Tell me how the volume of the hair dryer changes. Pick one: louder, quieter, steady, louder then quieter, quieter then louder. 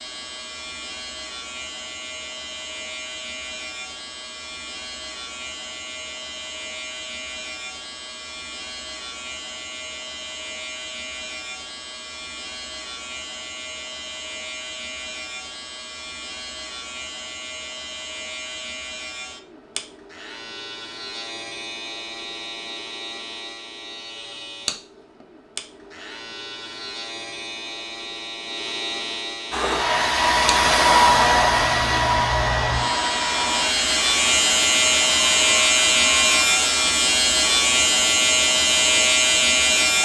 quieter.